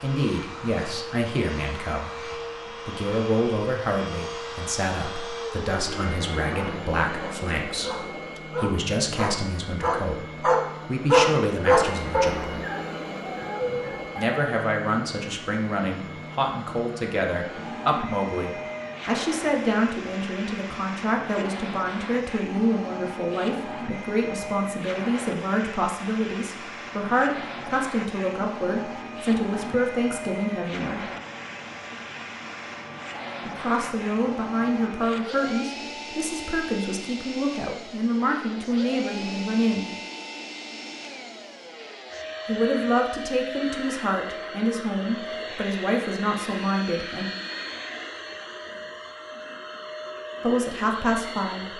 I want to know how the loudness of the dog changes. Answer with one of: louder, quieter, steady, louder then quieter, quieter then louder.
louder then quieter.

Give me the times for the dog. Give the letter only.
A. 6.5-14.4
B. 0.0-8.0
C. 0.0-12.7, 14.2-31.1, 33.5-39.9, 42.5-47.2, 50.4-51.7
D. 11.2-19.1
A.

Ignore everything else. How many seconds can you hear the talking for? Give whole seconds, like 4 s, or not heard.
42 s.